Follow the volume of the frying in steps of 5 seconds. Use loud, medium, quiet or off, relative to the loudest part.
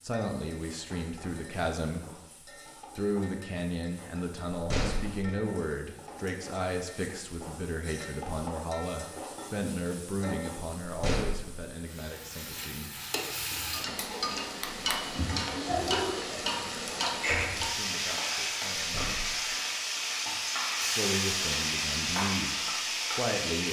quiet, quiet, medium, loud, loud.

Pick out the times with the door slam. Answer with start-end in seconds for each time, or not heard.
4.5-5.2, 10.8-11.7, 18.8-19.4.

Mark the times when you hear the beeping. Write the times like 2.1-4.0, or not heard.
13.9-15.2.